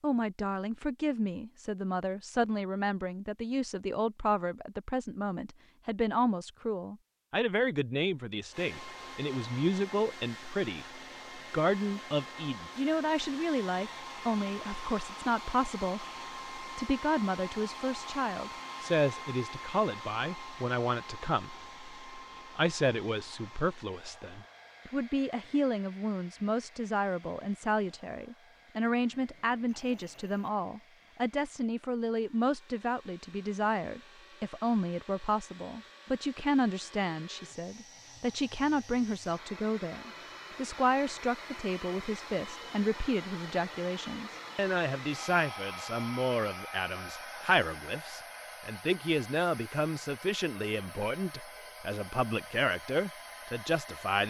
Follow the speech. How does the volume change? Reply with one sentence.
The volume of the speech stays about the same.